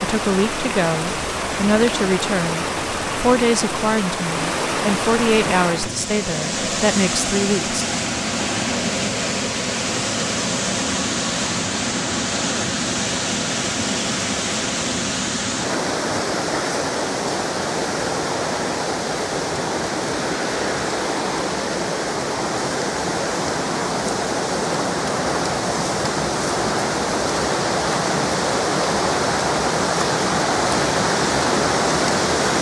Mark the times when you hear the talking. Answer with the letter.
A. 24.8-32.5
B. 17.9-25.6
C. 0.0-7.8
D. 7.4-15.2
C.